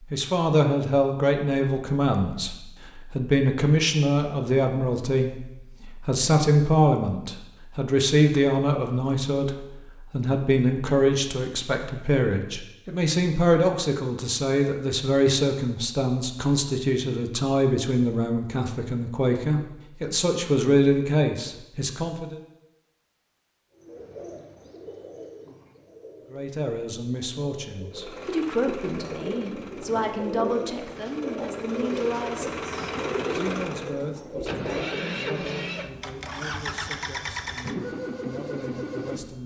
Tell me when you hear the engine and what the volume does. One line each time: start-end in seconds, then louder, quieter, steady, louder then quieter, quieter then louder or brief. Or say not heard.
27.9-39.4 louder.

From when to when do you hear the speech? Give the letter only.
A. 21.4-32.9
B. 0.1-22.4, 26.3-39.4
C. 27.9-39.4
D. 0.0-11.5
B.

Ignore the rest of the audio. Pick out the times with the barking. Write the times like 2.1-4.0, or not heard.
not heard.